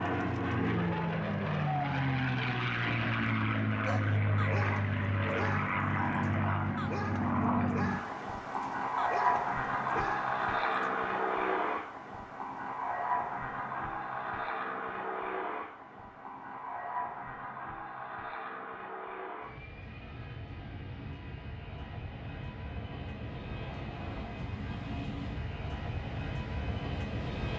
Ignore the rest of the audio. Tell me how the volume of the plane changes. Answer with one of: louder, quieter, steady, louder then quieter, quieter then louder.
quieter.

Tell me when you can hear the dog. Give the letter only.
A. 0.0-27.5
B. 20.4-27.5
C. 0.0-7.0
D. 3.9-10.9
D.